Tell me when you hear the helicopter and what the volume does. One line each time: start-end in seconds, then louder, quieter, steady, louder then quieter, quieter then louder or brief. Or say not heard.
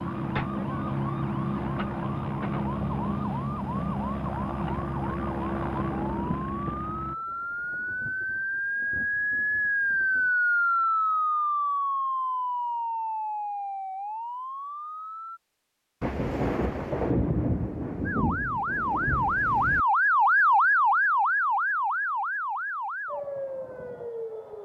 0.0-7.2 steady.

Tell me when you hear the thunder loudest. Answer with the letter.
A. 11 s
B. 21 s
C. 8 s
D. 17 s
D.